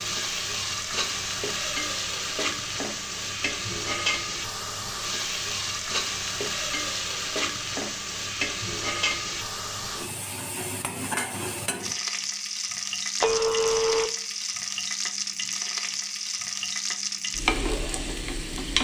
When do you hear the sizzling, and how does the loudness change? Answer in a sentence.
You can hear the sizzling from 0.0 to 18.7 s, at a steady volume.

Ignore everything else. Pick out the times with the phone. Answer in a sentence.
The phone can be heard from 13.2 to 14.1 s.